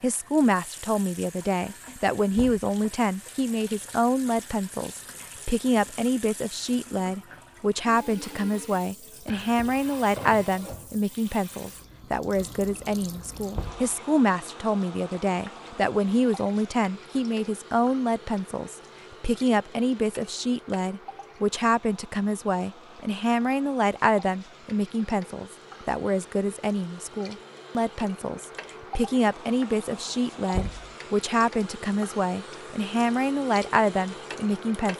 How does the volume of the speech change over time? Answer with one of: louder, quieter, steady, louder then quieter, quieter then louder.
steady.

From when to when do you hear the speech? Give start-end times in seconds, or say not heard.
0.0-34.9.